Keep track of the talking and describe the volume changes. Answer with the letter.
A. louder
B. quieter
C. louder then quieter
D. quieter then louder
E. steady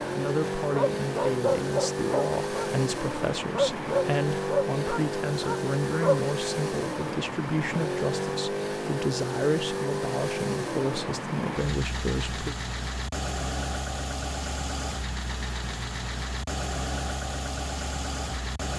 E.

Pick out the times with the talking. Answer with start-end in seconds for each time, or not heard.
0.1-12.6.